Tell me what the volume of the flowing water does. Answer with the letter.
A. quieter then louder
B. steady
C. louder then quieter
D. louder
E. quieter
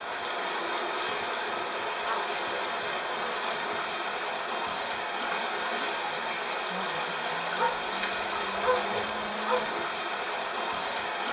B.